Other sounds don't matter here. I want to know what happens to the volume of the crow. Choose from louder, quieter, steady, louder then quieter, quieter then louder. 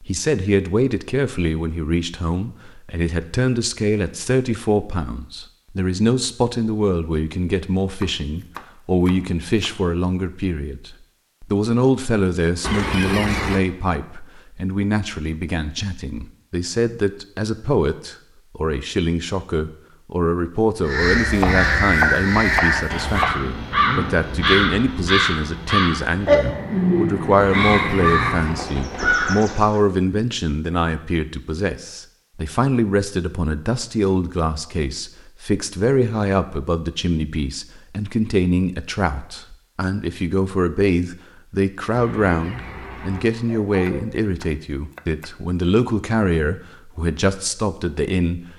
steady.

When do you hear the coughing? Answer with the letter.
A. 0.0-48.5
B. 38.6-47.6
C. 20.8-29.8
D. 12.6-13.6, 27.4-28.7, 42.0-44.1
D.